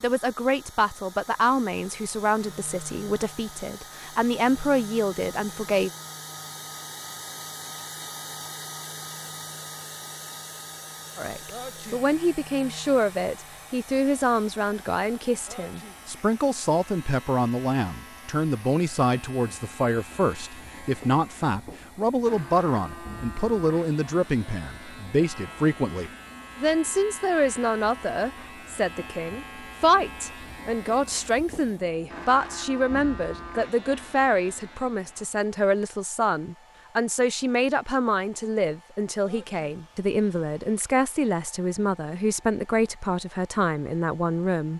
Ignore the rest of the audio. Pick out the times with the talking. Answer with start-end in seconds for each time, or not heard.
0.0-5.9, 11.2-44.7.